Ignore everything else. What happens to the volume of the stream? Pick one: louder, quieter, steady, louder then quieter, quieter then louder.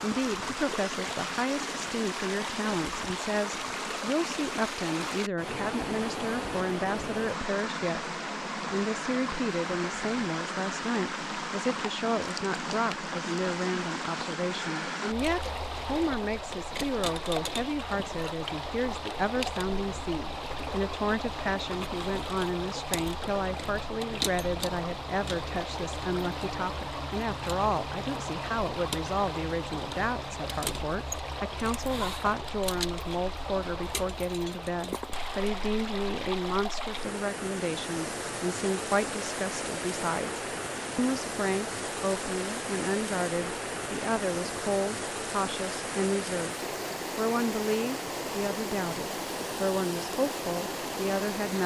steady.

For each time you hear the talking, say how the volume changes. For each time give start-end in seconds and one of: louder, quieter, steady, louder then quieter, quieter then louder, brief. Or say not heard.
0.0-46.5 steady
47.1-51.6 steady.